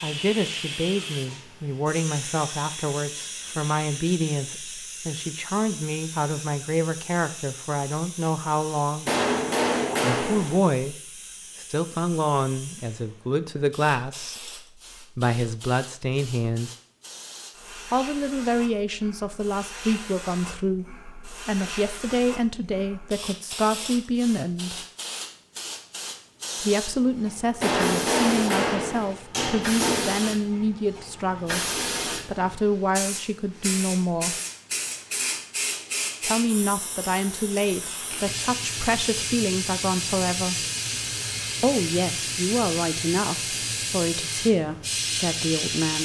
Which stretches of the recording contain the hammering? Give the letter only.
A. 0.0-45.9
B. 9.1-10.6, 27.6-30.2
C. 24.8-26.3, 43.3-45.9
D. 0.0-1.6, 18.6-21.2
B.